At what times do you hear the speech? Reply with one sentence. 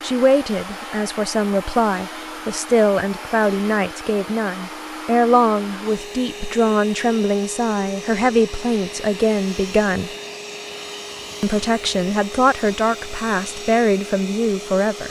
You can hear the speech from 0.0 to 10.1 s and from 11.4 to 15.0 s.